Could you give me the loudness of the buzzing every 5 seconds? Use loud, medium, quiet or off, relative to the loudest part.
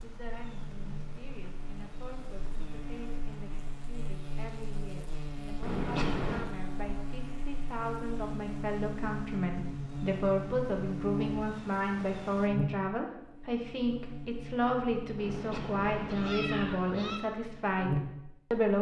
medium, loud, loud, loud.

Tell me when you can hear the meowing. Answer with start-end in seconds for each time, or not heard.
5.6-6.5, 15.2-17.2.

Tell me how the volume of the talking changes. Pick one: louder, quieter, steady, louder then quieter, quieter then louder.
louder.